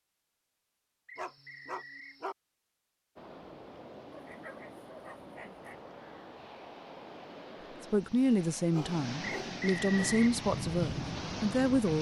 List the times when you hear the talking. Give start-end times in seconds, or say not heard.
7.9-11.9.